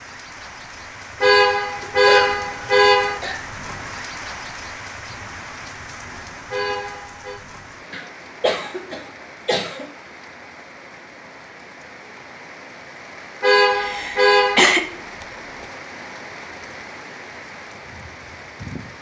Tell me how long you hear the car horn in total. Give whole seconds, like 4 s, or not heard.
4 s.